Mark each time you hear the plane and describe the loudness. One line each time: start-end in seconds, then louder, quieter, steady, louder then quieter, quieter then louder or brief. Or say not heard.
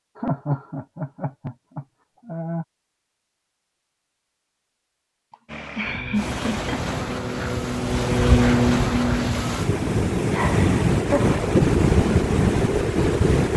5.5-9.6 louder.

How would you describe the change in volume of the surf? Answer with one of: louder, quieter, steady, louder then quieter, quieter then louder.
louder.